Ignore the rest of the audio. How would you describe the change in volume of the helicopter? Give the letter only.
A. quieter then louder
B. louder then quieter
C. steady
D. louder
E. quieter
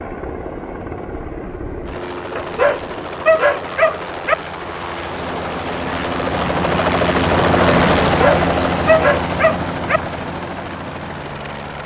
B.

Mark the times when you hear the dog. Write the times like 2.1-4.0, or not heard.
2.4-4.3, 8.1-10.0.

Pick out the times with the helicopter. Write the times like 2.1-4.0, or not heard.
0.0-11.8.